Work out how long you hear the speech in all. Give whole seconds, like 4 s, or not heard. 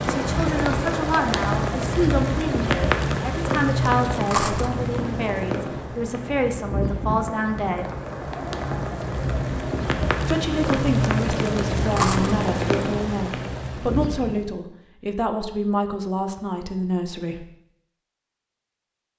15 s.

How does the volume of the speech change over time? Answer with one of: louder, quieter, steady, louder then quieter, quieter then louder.
steady.